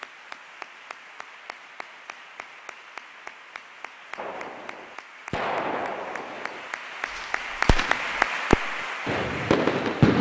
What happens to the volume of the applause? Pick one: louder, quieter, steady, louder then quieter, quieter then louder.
louder.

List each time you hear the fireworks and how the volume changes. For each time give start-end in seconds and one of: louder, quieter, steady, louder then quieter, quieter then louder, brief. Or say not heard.
4.2-10.1 quieter then louder.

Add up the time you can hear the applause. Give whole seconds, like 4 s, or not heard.
10 s.